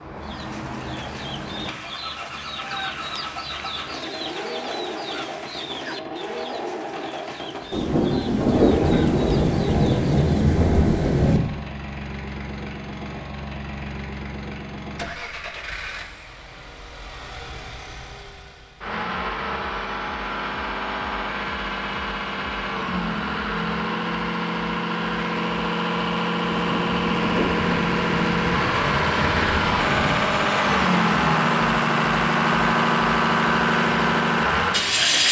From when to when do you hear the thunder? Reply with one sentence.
The thunder can be heard from 7.7 to 11.4 s and from 26.4 to 30.1 s.